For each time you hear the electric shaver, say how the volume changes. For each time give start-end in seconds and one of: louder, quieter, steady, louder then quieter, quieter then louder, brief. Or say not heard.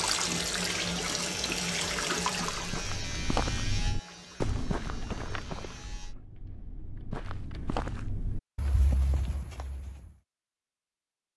0.2-6.2 quieter.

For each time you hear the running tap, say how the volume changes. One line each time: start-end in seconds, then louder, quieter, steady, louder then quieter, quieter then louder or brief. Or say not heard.
0.0-6.2 quieter.